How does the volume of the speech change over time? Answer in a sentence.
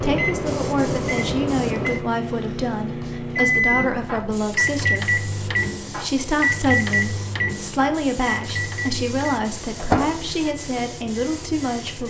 The volume of the speech stays about the same.